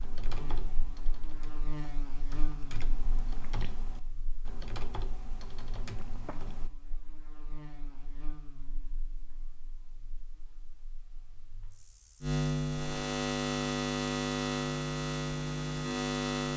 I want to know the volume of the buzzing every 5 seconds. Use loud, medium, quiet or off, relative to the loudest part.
quiet, quiet, loud, loud.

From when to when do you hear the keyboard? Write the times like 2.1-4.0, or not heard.
0.0-6.7.